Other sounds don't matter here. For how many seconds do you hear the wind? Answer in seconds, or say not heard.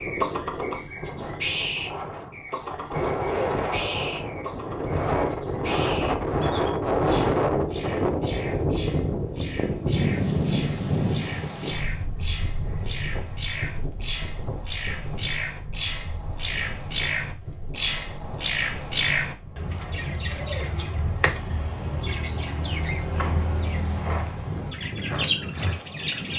26 s.